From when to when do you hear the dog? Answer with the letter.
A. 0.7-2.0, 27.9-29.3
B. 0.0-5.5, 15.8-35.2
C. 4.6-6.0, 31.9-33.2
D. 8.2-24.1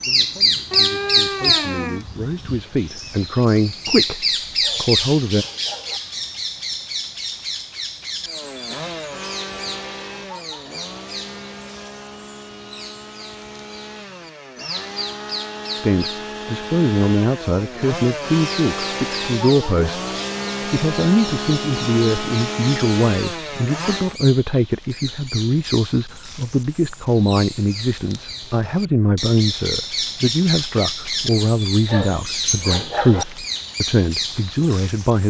C.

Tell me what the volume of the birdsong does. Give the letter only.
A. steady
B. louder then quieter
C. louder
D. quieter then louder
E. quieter
D.